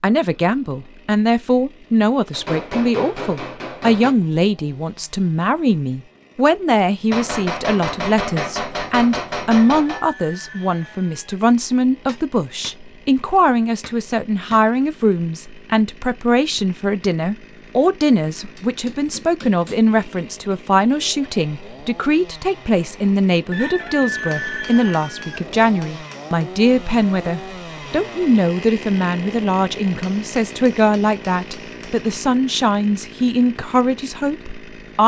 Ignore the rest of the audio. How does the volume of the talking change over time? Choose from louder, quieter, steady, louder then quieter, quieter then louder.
steady.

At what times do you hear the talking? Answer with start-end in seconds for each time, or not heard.
0.0-35.0.